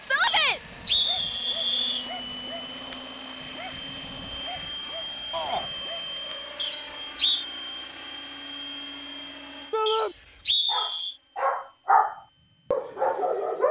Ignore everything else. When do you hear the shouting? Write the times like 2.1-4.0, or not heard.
0.0-0.6, 5.3-5.7, 9.7-10.2.